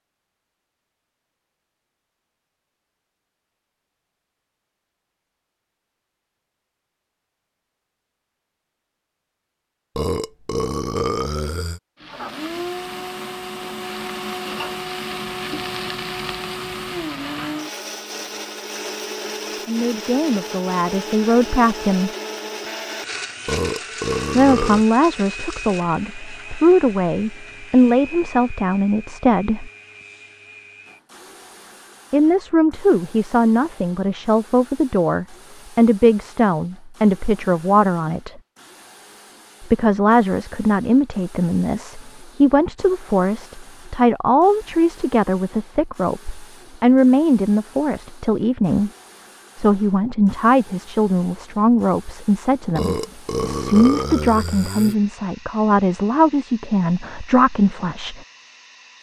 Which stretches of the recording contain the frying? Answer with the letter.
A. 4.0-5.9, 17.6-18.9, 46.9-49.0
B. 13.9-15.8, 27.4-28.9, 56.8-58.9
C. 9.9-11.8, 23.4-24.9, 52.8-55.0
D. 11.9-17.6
D.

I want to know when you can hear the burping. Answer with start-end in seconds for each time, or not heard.
9.9-11.8, 23.4-24.9, 52.8-55.0.